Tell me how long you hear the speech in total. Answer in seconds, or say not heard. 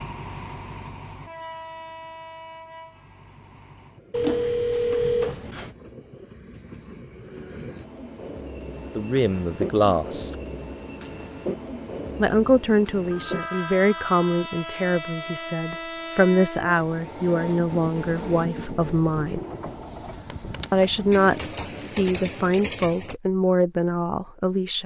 13 s.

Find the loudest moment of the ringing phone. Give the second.
5 s.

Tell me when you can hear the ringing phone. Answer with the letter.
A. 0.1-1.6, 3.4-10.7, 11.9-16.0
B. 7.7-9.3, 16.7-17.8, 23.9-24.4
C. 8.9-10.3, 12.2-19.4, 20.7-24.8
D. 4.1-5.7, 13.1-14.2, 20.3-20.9
D.